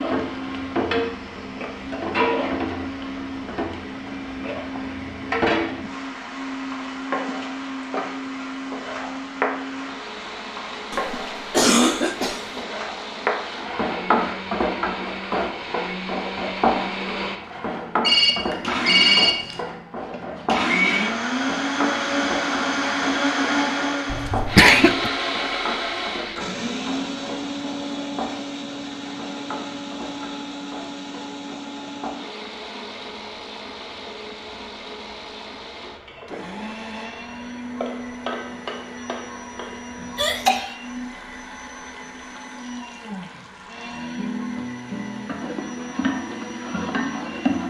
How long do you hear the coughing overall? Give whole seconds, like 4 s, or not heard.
3 s.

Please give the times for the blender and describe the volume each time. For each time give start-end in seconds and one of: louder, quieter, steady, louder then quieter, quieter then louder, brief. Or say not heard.
0.0-47.6 louder then quieter.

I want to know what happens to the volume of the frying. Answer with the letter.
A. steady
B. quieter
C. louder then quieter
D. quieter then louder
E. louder
D.